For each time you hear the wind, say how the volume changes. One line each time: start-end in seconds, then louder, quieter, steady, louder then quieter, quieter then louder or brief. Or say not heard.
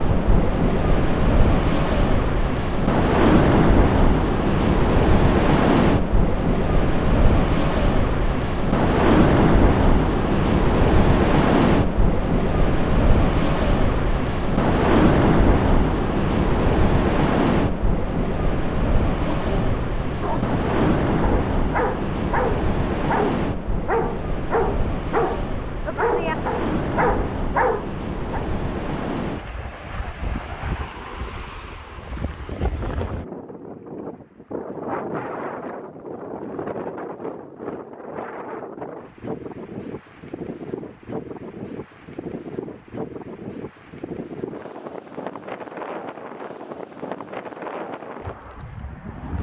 0.0-49.3 quieter.